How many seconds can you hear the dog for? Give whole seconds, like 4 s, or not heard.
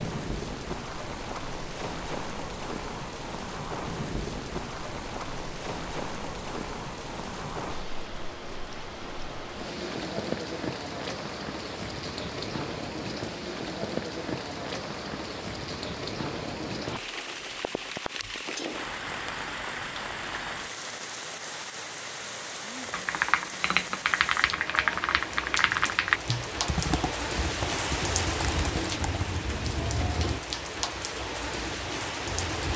not heard.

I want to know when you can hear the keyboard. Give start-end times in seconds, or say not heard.
22.9-29.2.